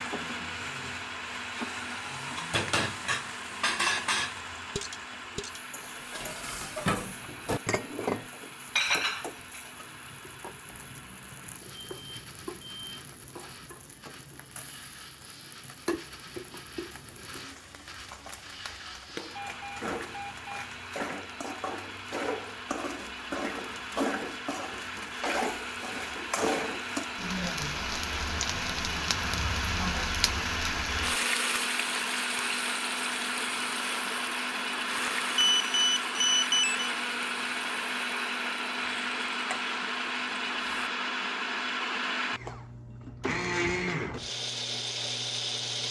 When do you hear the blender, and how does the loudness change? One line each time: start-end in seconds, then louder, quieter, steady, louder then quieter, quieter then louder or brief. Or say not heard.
0.0-45.8 quieter then louder.